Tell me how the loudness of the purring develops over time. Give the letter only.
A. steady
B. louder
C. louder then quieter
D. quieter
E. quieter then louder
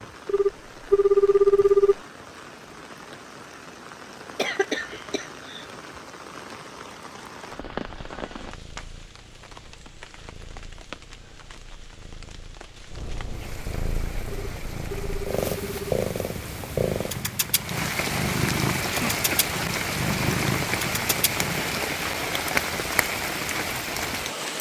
B.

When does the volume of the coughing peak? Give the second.
5 s.